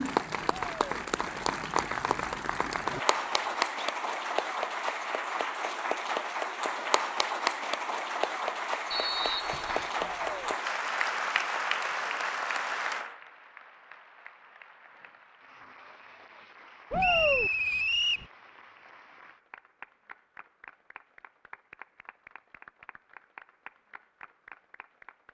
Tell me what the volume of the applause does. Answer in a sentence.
The loudness of the applause goes down.